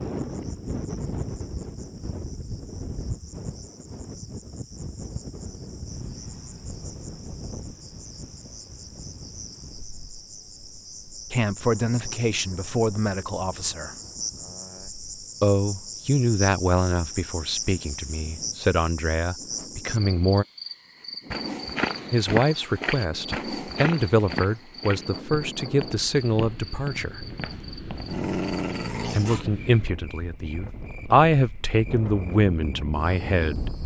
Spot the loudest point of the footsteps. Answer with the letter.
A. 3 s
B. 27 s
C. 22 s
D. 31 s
C.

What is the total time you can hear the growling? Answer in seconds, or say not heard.
2 s.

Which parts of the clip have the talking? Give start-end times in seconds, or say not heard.
11.3-13.9, 15.4-20.4, 22.1-27.2, 29.0-33.8.